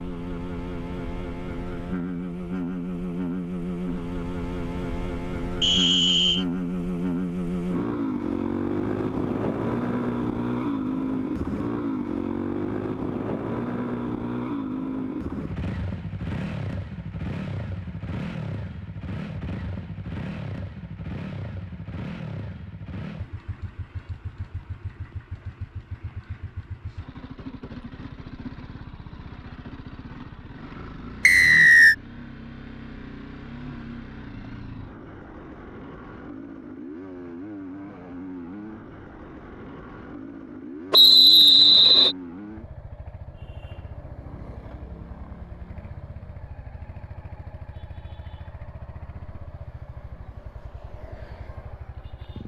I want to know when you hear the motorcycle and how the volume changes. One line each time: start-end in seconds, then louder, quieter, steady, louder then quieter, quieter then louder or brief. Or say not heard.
0.0-52.4 quieter.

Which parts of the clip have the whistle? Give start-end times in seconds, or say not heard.
5.6-6.5, 31.2-31.9, 40.9-42.1.